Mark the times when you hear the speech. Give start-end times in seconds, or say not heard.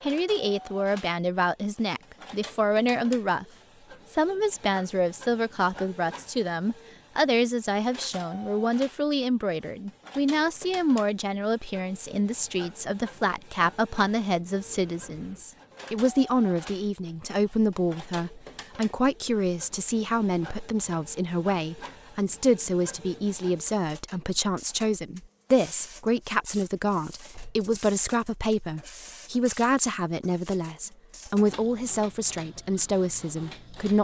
0.0-3.5, 4.1-33.9.